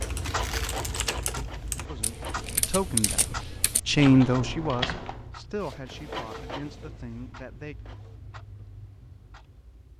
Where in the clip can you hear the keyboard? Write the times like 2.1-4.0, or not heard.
0.0-5.3.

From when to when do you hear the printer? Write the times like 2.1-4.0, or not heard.
0.0-2.6, 5.6-8.2.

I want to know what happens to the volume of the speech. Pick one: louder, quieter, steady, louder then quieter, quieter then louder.
louder then quieter.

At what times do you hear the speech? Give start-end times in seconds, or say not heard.
1.9-7.8.